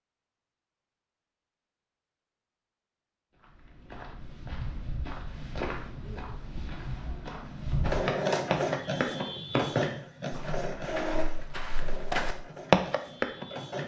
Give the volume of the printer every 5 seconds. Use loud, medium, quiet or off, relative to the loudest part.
off, loud, medium.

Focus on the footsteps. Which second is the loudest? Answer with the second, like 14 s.
13 s.